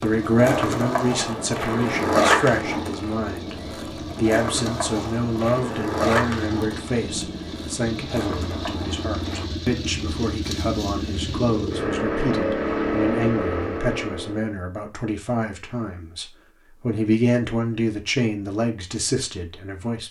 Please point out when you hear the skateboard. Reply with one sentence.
You can hear the skateboard from 0.0 to 9.4 s.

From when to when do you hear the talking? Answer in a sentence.
The talking can be heard from 0.0 to 20.0 s.